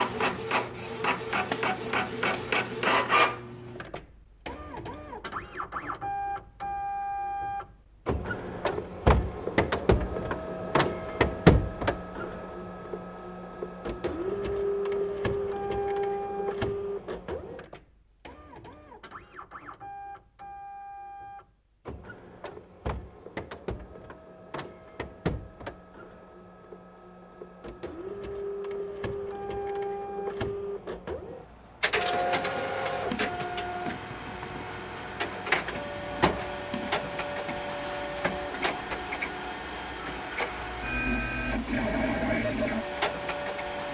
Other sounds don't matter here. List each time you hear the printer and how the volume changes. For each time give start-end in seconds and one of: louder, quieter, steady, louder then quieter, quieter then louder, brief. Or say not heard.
0.0-43.8 quieter then louder.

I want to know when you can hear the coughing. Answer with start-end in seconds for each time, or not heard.
not heard.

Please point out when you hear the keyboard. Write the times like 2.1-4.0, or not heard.
32.1-37.7.